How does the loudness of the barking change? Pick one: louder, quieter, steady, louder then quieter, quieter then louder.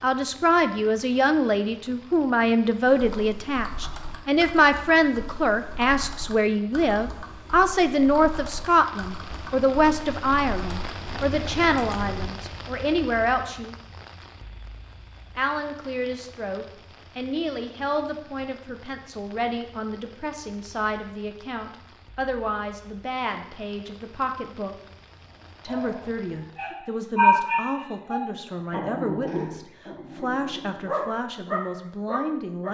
quieter then louder.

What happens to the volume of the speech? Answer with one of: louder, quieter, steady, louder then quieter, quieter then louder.
quieter.